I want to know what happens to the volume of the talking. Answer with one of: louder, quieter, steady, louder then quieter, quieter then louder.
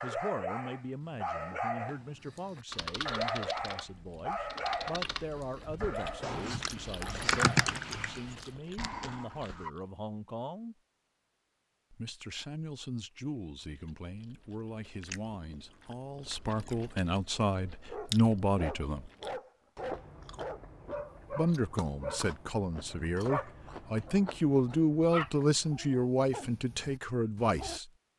louder.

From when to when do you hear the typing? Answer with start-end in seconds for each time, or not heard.
2.7-8.3.